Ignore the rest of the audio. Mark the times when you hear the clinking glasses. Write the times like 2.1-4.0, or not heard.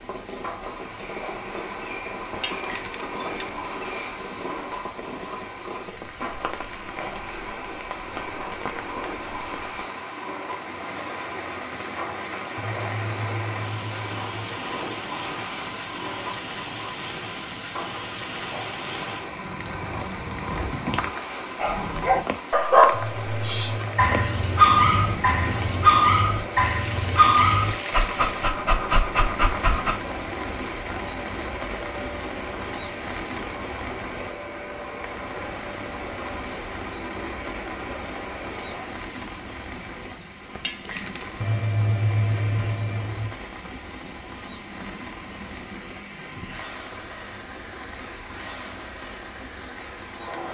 2.3-3.7, 40.5-41.3.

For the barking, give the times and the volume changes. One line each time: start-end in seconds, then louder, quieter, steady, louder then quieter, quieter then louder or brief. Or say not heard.
21.6-29.9 quieter.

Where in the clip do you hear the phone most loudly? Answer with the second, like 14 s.
42 s.